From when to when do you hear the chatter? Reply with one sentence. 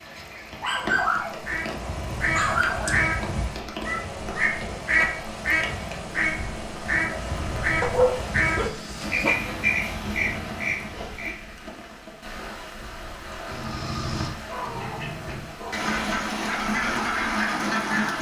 You can't hear the chatter here.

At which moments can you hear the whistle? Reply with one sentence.
You can't hear the whistle here.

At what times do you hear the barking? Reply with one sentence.
The barking can be heard from 0.6 to 3.1 s, from 7.8 to 9.3 s and from 14.4 to 15.9 s.